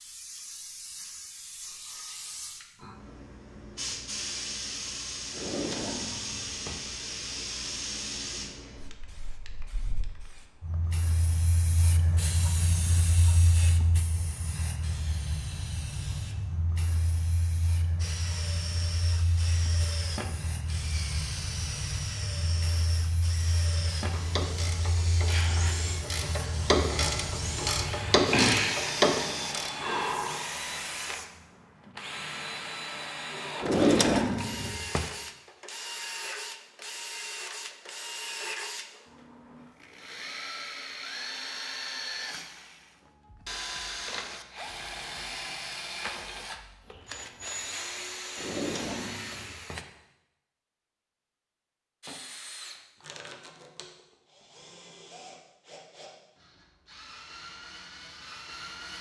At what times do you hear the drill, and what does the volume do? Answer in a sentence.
The drill can be heard from 17.9 to 49.9 s, at a steady volume; and from 52.0 to 58.9 s, getting quieter then louder.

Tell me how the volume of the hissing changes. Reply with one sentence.
The volume of the hissing stays about the same.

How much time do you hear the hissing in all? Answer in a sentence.
You can hear the hissing for 31 seconds altogether.